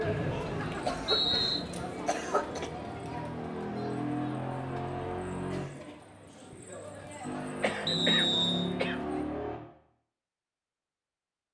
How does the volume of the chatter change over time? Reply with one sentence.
The volume of the chatter goes down.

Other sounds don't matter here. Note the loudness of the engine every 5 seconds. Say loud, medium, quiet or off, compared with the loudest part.
loud, loud, off.